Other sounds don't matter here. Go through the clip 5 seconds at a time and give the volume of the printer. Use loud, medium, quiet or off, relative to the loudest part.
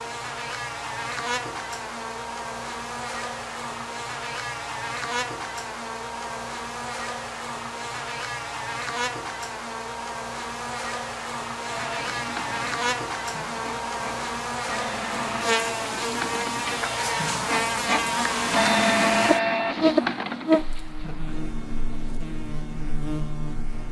off, off, medium, loud, medium.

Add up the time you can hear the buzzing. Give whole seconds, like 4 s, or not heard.
24 s.